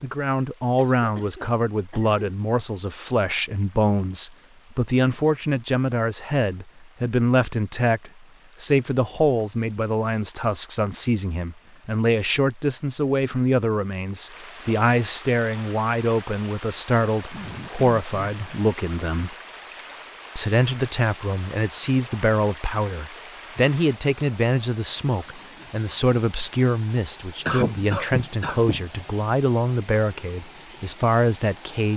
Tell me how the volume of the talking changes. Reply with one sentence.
The loudness of the talking stays about the same.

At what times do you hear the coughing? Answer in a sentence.
You can hear the coughing from 0.8 to 2.2 s, from 17.3 to 18.4 s and from 27.4 to 28.9 s.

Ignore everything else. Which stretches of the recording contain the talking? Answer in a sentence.
You can hear the talking from 0.0 to 19.3 s and from 20.4 to 31.9 s.